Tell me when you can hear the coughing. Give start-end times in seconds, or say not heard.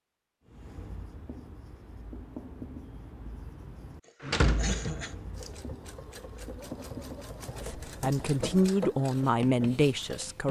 4.0-5.2.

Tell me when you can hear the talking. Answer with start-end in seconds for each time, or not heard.
7.7-10.4.